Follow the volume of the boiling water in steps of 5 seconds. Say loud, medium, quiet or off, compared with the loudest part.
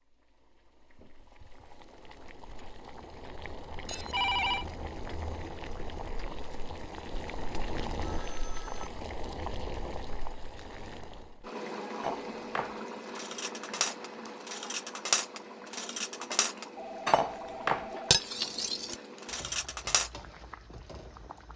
medium, loud, loud, medium, medium.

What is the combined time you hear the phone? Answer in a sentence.
The phone can be heard for 3 seconds in total.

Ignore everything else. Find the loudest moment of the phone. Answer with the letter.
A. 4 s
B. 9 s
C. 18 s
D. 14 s
A.